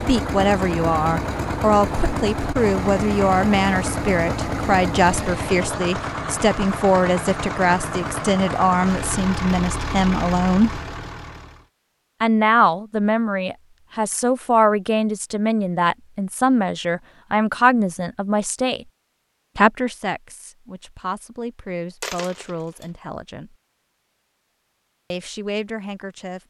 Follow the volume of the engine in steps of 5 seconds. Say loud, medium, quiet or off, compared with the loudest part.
loud, loud, medium, off, off, off.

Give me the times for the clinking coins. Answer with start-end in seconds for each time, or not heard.
22.0-22.9.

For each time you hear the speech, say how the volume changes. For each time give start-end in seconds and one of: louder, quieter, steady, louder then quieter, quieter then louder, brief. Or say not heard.
0.0-10.8 steady
12.2-18.9 steady
19.6-23.6 steady
25.1-26.4 brief.